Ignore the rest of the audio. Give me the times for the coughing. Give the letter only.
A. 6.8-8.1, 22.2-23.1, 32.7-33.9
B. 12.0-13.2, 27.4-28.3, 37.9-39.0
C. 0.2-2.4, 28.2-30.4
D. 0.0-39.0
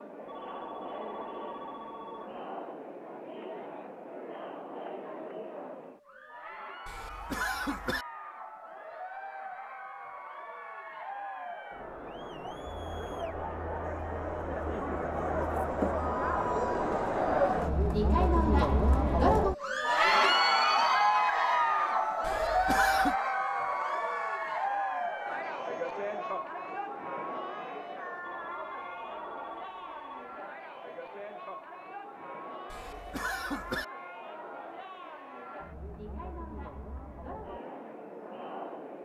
A.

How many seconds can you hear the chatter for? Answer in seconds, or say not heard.
39 s.